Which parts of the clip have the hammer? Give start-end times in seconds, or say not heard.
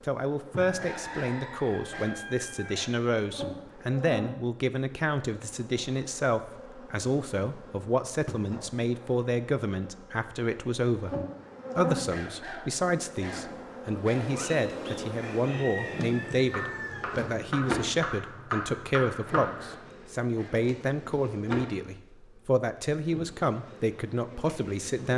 14.2-19.8.